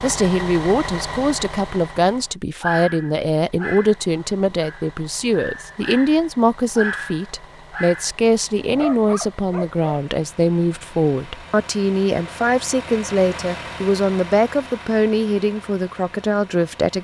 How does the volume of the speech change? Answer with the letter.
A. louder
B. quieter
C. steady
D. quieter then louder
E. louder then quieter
C.